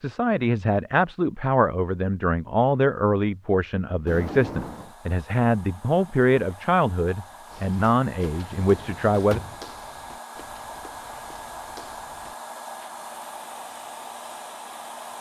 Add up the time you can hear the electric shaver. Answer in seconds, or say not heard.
not heard.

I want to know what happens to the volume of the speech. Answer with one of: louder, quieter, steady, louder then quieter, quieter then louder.
steady.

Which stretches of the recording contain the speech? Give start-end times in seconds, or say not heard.
0.0-9.4.